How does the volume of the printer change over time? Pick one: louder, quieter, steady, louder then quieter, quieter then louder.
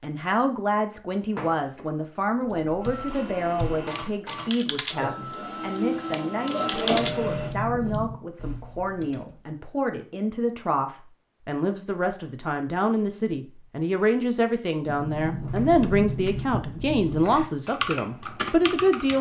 louder.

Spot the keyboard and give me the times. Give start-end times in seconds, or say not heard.
2.5-9.4, 15.2-19.1.